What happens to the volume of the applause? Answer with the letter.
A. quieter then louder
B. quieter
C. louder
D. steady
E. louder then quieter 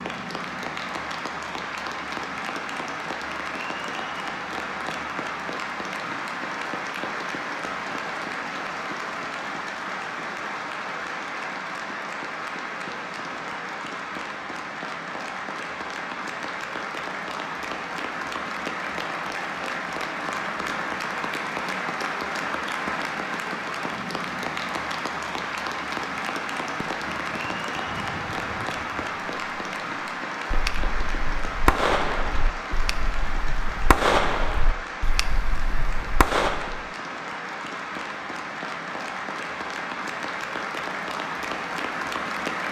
D.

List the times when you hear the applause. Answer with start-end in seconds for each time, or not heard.
0.0-42.6.